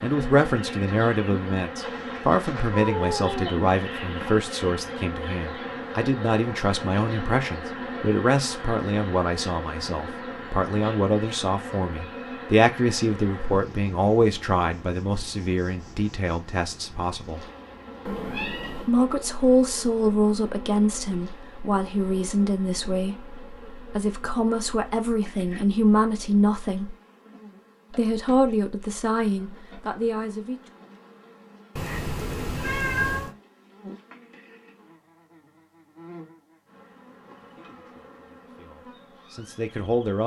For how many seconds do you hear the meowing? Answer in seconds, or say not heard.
4 s.